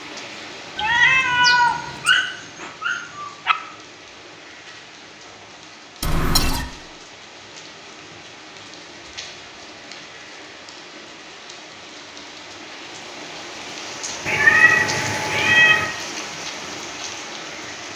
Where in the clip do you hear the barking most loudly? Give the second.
2 s.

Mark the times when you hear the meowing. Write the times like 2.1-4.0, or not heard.
0.8-2.2, 6.0-6.7, 14.2-15.8.